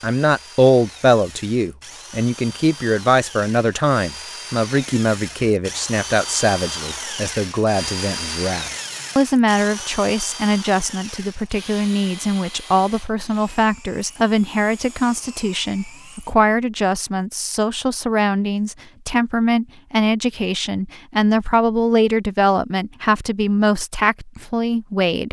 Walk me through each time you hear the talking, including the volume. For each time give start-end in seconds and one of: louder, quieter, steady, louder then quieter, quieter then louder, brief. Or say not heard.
0.0-25.2 steady.